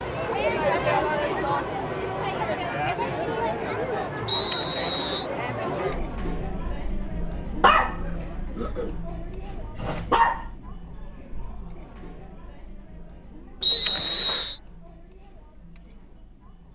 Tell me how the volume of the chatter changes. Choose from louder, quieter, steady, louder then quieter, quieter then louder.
quieter.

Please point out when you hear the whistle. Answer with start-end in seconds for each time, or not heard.
4.2-5.2, 13.6-14.6.